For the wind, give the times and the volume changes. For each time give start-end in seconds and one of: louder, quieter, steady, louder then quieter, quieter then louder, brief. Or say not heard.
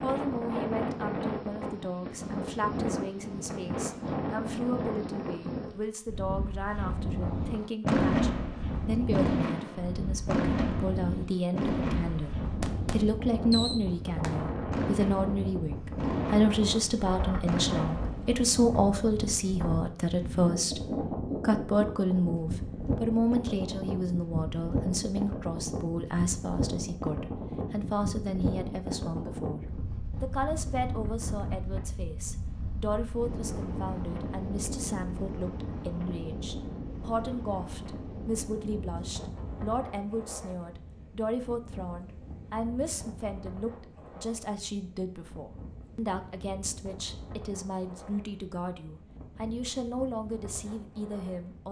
0.0-51.6 quieter.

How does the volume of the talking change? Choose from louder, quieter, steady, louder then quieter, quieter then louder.
louder then quieter.